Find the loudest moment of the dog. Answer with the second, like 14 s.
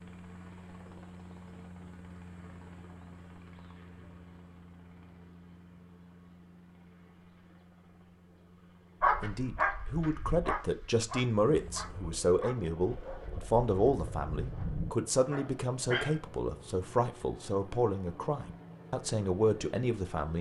9 s.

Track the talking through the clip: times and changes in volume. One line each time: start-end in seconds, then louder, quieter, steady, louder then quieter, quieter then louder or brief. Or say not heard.
9.2-20.3 steady.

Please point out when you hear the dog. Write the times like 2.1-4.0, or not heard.
9.0-16.2.